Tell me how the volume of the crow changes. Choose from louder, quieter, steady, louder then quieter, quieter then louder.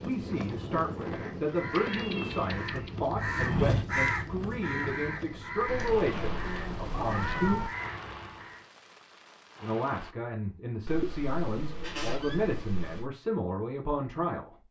louder then quieter.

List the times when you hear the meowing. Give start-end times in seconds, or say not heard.
1.7-2.9, 5.7-7.7, 10.8-13.1.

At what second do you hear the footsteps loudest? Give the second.
4 s.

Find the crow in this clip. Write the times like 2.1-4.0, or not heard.
1.0-8.7.